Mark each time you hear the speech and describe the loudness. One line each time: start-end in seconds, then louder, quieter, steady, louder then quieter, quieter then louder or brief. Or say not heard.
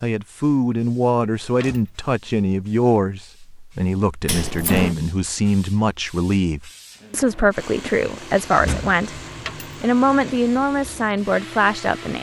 0.0-9.2 steady
9.8-12.1 brief.